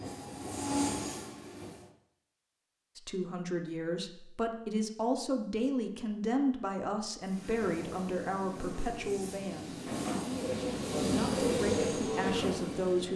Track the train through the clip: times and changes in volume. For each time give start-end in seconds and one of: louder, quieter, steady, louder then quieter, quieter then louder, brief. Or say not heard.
0.0-1.9 brief
7.2-13.1 louder.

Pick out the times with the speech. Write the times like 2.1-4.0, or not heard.
3.0-13.1.